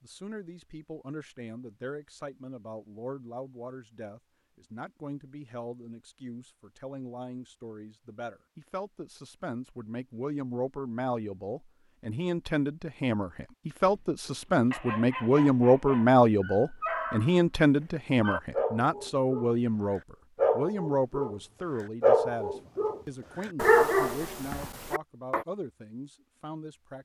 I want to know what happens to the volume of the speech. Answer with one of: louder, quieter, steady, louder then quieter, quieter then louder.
louder then quieter.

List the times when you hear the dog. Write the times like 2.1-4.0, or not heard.
13.8-17.4, 18.2-25.4.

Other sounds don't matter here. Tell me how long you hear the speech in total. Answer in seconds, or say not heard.
27 s.